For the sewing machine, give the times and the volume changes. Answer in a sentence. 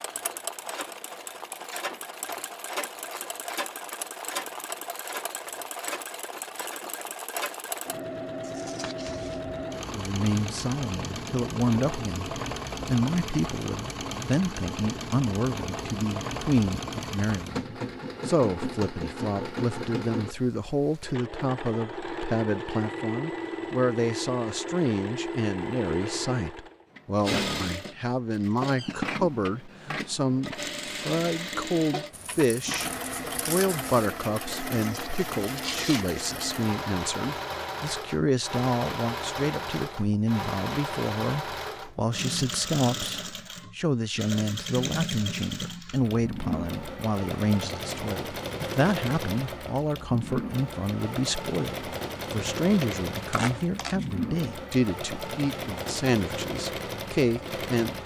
The sewing machine can be heard from 0.0 to 58.0 s, at a steady volume.